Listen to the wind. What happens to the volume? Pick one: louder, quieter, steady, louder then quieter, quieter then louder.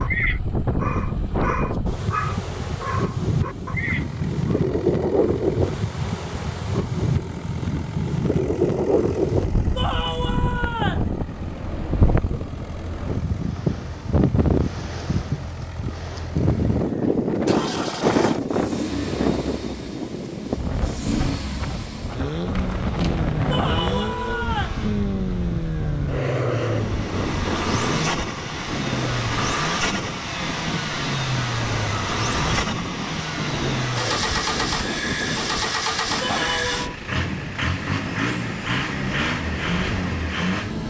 quieter.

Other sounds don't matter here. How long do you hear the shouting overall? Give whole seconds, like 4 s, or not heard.
3 s.